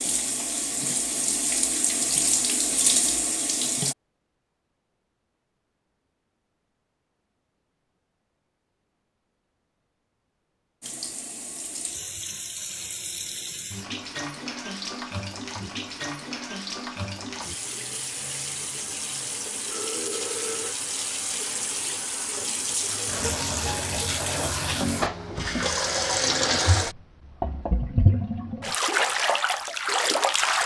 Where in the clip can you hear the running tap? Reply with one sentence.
You can hear the running tap from 0.0 to 4.0 s and from 10.8 to 30.6 s.